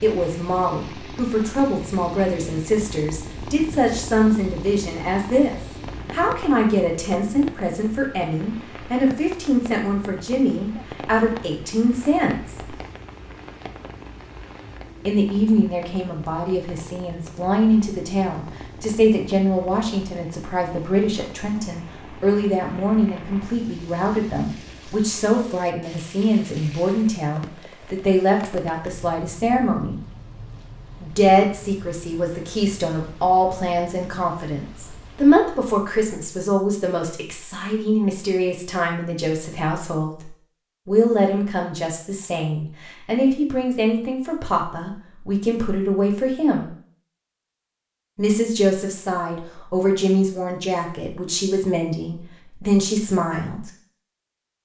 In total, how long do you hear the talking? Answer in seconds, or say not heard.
49 s.